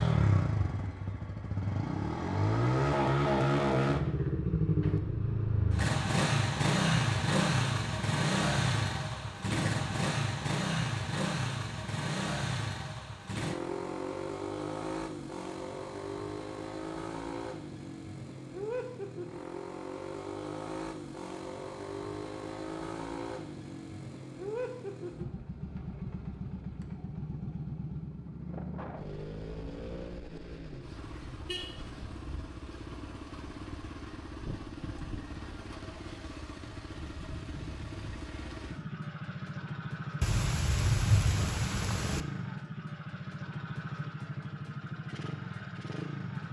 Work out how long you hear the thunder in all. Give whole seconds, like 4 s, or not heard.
2 s.